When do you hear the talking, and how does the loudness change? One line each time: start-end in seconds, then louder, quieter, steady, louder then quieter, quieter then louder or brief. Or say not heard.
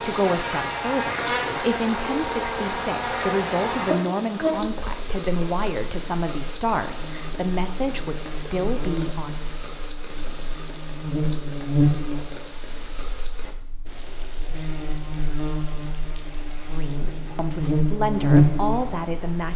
0.0-9.3 steady
16.6-19.5 brief.